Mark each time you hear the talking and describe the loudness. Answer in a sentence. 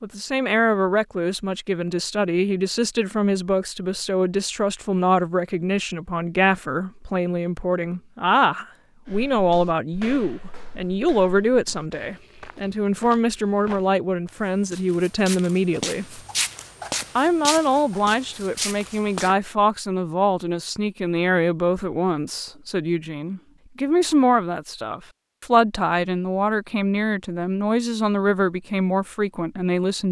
You can hear the talking from 0.0 to 16.2 s, at a steady volume; and from 17.1 to 30.0 s, at a steady volume.